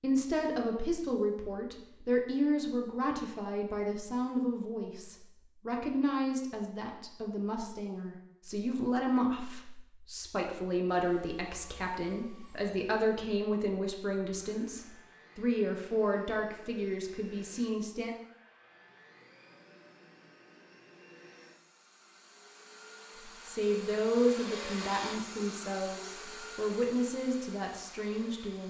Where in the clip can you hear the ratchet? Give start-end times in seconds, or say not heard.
not heard.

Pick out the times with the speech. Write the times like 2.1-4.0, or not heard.
0.0-18.1, 23.4-28.6.